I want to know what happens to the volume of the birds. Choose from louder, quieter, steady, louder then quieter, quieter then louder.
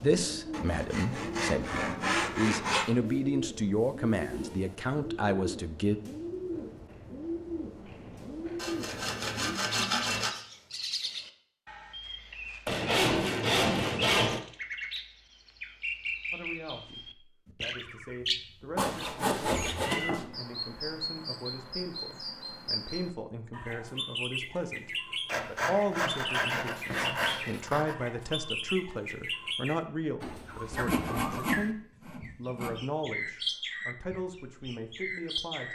steady.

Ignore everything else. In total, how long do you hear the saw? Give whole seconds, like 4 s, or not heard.
12 s.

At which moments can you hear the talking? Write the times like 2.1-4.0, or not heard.
0.0-6.0, 16.3-35.7.